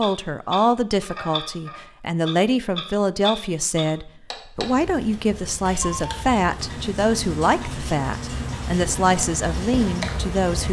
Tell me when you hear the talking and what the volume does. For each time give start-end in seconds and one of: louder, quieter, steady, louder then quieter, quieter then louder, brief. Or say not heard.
0.0-10.6 steady.